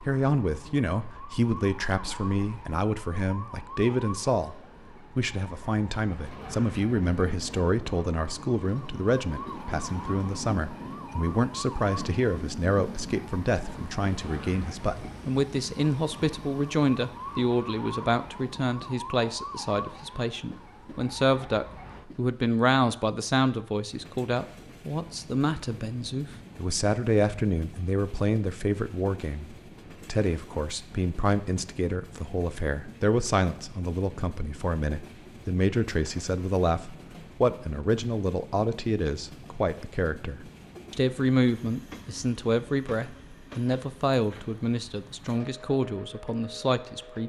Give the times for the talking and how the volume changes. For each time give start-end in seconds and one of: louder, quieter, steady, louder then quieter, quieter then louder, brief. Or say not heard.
0.0-47.2 steady.